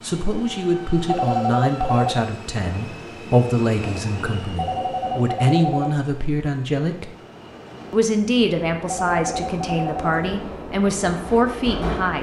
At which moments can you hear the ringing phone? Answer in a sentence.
The ringing phone can be heard from 1.1 to 2.1 s, from 4.5 to 5.9 s and from 9.1 to 10.1 s.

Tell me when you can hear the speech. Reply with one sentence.
You can hear the speech from 0.0 to 7.1 s and from 7.9 to 12.1 s.